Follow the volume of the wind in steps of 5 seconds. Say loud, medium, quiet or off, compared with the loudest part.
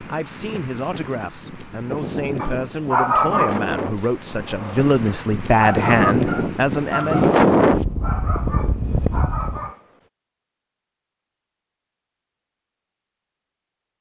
medium, loud, off.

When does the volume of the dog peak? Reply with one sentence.
The loudest moment of the dog is at 3 seconds.